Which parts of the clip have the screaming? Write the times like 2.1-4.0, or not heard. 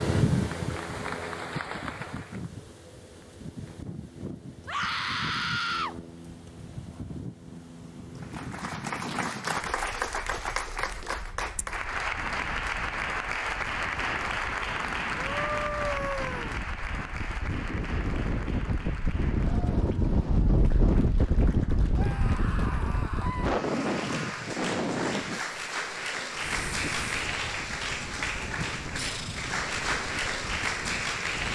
4.7-6.0, 15.2-16.6, 21.9-24.4.